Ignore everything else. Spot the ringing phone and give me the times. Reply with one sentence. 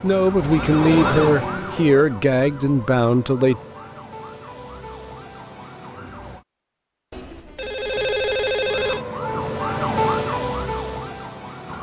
You can hear the ringing phone from 0.1 to 1.4 s and from 7.1 to 9.1 s.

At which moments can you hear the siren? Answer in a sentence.
The siren can be heard from 0.0 to 6.5 s and from 8.7 to 11.7 s.